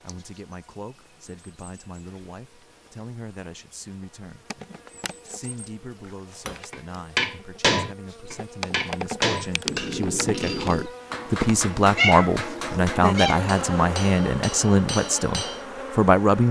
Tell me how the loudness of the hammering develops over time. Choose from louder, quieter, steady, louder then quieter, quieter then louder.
quieter.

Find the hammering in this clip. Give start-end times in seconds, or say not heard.
6.5-15.7.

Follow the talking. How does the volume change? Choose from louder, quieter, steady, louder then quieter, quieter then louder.
louder.